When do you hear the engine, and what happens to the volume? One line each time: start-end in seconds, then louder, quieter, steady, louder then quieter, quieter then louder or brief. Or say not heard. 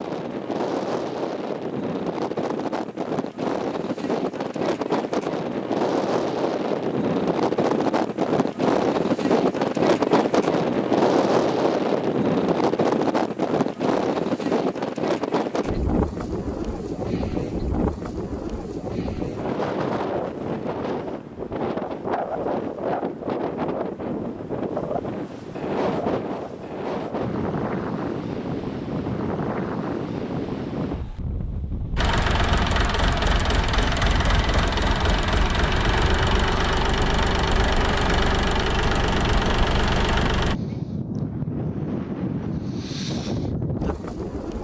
31.9-40.5 steady.